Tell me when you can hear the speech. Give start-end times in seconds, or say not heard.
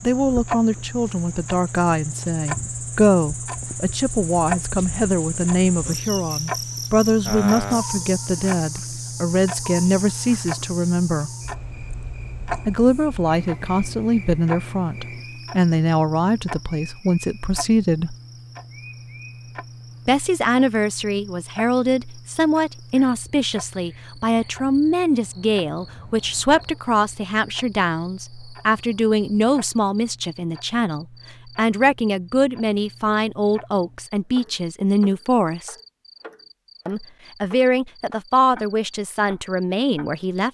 0.0-11.3, 12.7-18.1, 20.1-35.8, 36.9-40.4.